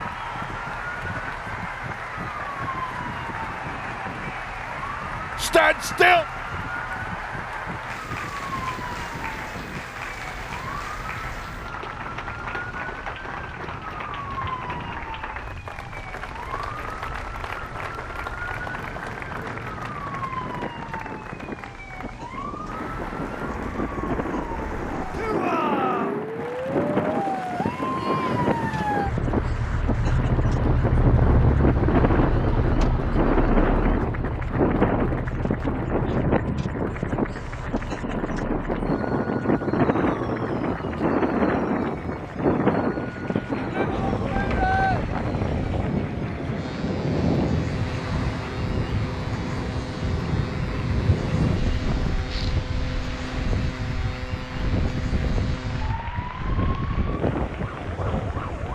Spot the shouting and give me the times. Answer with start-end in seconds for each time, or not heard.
5.4-6.2, 25.1-26.2, 43.7-45.0.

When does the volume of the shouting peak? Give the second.
6 s.